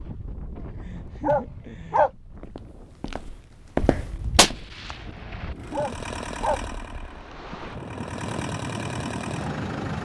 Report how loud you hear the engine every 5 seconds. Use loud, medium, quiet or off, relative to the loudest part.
off, loud.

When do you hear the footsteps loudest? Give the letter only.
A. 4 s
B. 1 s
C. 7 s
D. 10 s
A.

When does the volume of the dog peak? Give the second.
2 s.